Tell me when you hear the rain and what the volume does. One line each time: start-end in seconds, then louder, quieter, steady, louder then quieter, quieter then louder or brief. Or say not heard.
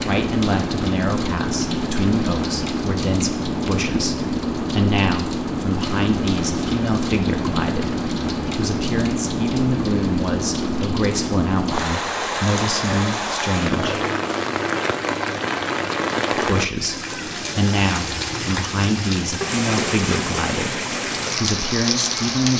0.0-22.5 steady.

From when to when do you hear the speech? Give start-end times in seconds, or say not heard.
0.0-14.0, 16.3-22.5.